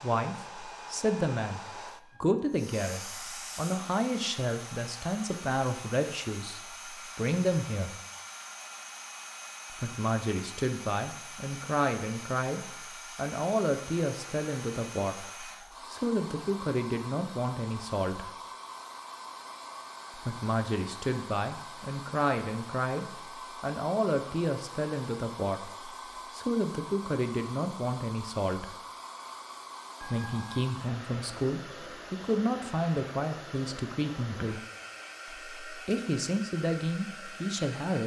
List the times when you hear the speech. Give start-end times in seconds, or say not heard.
0.0-8.0, 9.7-18.3, 20.1-28.8, 30.0-34.6, 35.2-38.0.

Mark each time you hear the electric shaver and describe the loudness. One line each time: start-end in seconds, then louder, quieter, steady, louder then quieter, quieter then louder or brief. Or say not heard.
not heard.